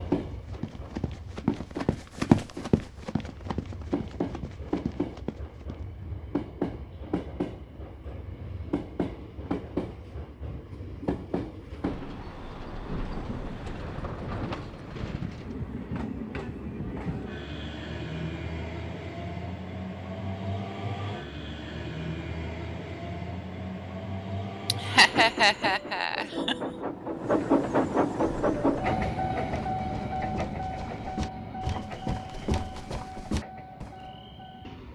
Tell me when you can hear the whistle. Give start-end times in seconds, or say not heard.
not heard.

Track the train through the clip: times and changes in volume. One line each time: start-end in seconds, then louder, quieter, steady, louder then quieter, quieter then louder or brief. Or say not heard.
0.0-34.8 louder.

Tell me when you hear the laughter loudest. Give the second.
25 s.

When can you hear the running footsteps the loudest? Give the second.
2 s.